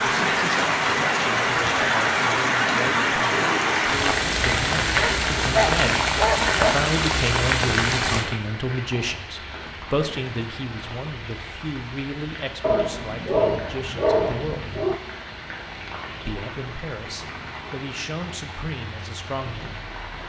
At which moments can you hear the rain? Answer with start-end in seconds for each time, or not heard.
0.0-20.2.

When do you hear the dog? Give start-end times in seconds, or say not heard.
5.0-6.5, 12.6-14.9.